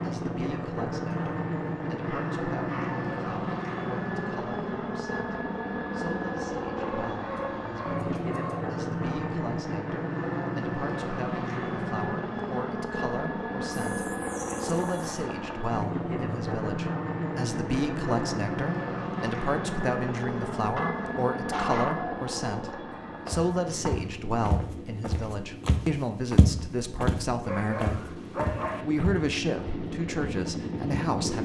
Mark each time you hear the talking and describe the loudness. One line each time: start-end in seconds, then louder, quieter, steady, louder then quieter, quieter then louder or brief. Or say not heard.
0.0-28.1 louder
28.8-31.4 brief.